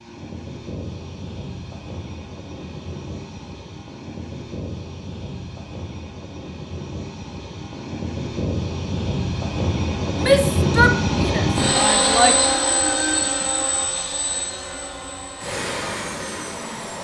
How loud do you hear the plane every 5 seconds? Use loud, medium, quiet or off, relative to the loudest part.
quiet, medium, loud, medium.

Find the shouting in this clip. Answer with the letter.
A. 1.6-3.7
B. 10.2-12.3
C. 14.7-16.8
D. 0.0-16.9
B.